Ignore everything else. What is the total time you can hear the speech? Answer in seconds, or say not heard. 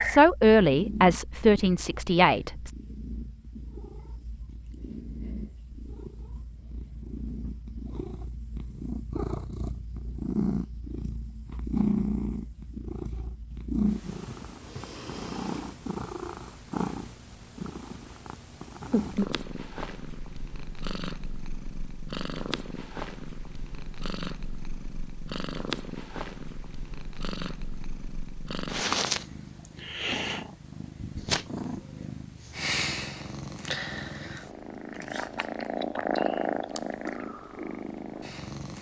3 s.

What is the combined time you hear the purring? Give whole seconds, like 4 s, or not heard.
39 s.